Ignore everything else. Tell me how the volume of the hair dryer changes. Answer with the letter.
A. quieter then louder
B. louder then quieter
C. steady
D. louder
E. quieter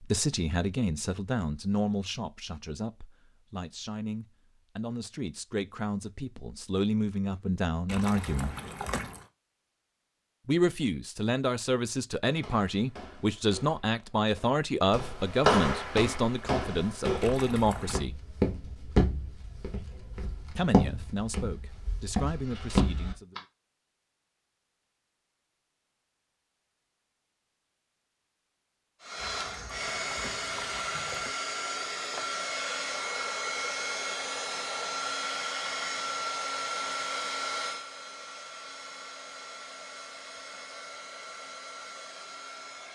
E.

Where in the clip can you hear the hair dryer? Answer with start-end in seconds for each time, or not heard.
29.0-42.8.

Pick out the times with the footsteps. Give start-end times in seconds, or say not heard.
12.2-23.4.